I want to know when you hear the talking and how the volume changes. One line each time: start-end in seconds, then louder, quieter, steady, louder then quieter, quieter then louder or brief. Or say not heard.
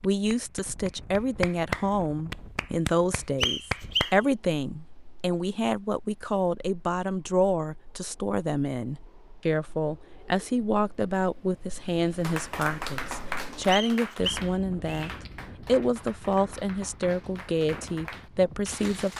0.0-19.1 steady.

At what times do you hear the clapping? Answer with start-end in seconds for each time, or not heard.
0.0-4.2, 12.2-19.1.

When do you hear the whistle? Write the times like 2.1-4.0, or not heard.
3.4-4.2, 13.7-15.1.